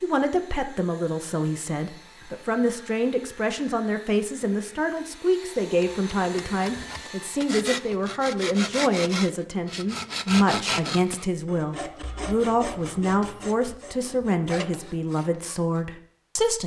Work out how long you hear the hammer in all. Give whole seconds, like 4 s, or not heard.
not heard.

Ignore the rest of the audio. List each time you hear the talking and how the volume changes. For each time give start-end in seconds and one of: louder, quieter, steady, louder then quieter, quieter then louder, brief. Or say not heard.
0.0-16.6 steady.